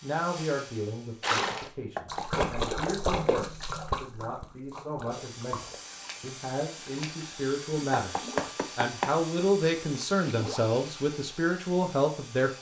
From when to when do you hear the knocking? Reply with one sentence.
The knocking can be heard from 1.9 to 2.9 s and from 8.0 to 9.1 s.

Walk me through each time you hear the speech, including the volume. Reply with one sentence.
The speech can be heard from 0.0 to 12.5 s, getting louder.